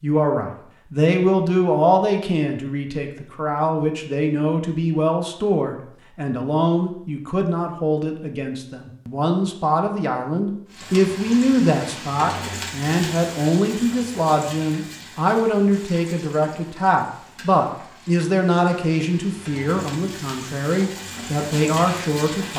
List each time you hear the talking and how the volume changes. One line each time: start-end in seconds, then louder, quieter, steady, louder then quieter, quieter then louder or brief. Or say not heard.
0.0-22.5 steady.